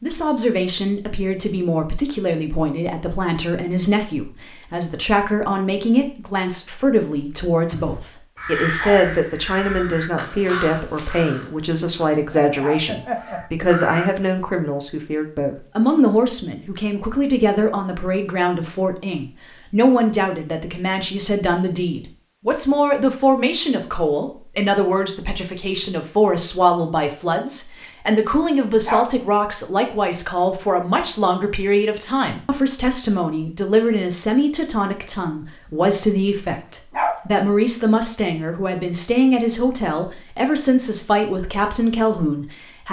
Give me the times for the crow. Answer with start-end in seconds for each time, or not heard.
7.7-14.2.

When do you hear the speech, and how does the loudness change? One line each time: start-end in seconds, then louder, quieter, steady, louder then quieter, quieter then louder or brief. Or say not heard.
0.0-42.8 steady.